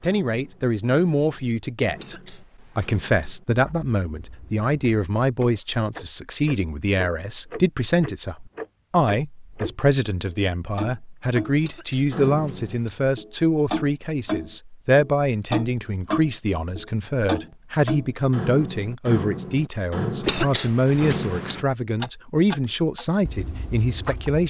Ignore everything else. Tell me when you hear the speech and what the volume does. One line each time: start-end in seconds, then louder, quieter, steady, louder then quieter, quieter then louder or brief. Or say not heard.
0.0-24.4 steady.